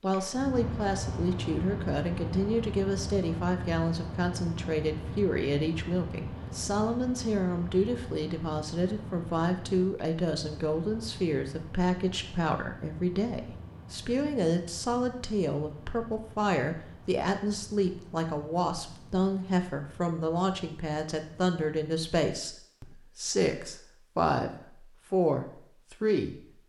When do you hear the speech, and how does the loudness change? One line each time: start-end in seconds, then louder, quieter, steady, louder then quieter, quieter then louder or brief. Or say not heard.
0.0-26.4 steady.